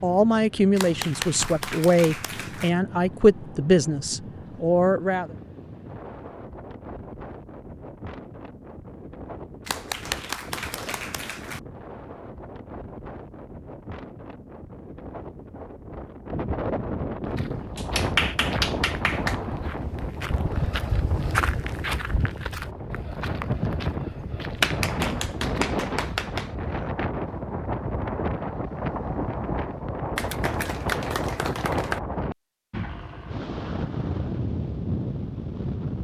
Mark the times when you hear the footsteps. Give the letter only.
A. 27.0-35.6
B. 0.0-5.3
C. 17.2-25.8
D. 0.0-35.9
C.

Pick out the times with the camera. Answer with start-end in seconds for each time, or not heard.
not heard.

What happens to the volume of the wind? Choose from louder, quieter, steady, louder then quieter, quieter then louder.
louder.